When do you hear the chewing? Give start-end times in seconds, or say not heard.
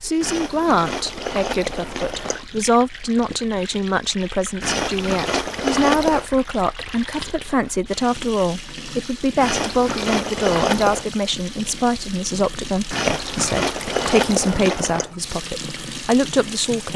0.2-2.5, 4.6-6.2, 9.4-11.1, 12.9-15.2.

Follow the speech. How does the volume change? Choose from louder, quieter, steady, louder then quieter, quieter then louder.
steady.